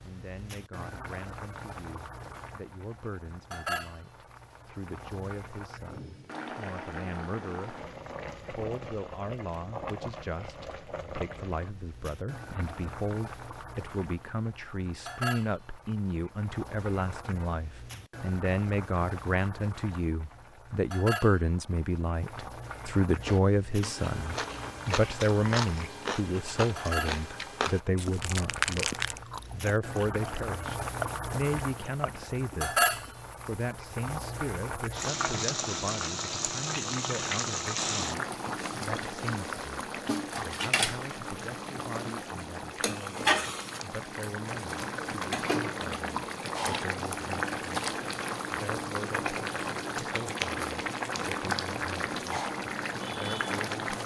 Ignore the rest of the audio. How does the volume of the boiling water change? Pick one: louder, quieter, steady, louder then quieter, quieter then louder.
louder.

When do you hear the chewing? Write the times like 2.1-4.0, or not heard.
23.1-33.1.